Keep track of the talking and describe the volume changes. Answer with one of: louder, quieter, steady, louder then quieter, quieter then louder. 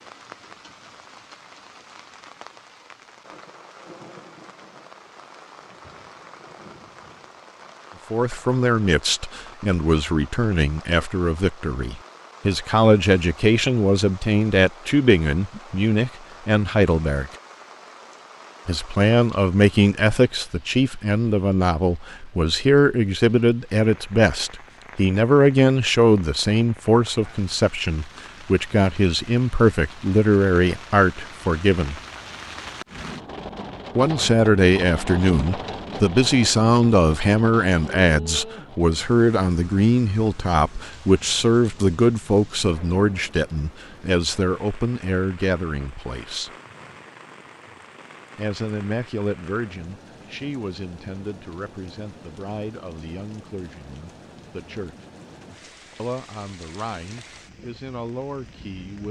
quieter.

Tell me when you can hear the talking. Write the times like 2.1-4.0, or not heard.
8.1-17.3, 18.6-31.9, 34.0-46.5, 48.4-55.0, 56.0-59.0.